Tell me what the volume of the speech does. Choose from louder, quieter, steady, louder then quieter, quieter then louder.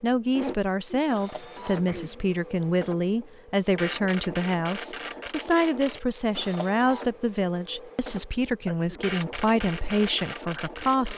steady.